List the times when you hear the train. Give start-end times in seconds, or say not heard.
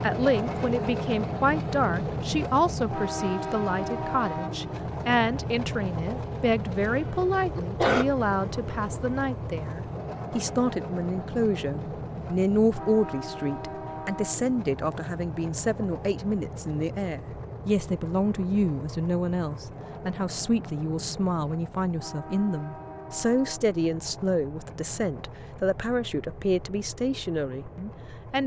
0.0-28.4.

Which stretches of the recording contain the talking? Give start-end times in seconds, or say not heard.
0.0-28.4.